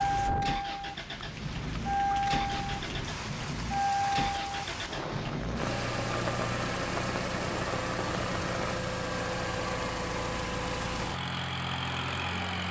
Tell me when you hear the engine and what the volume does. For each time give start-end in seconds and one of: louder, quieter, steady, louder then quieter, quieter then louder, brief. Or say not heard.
0.0-12.6 steady.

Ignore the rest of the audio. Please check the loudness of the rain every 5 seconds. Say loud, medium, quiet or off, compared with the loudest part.
loud, loud, off.